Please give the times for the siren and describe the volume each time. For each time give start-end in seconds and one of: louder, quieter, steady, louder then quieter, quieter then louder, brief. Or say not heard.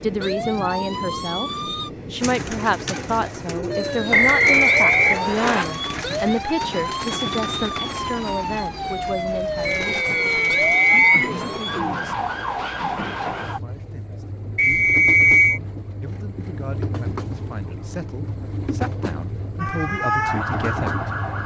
0.0-1.9 brief
3.6-13.6 steady
19.6-21.4 brief.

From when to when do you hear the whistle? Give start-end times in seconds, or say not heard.
4.1-5.7, 9.7-11.3, 14.6-15.6.